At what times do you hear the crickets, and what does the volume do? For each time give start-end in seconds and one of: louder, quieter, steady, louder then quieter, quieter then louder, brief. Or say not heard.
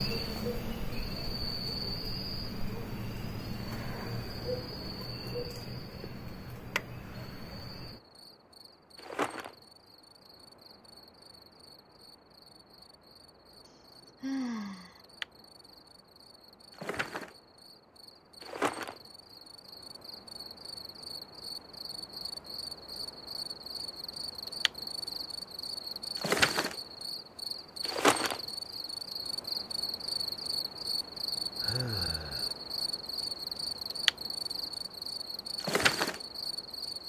0.0-37.0 quieter then louder.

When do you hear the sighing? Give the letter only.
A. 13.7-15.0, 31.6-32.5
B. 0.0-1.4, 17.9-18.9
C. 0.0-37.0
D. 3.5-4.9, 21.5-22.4
A.